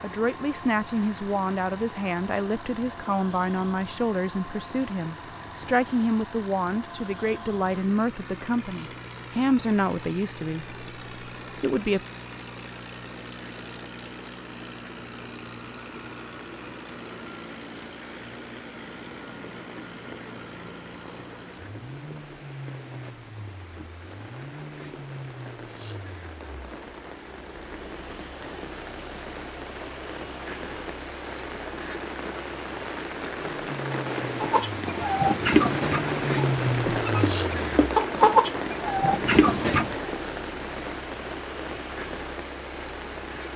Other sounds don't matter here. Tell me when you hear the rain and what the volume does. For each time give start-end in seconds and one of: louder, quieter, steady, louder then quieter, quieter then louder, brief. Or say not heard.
0.0-43.5 louder.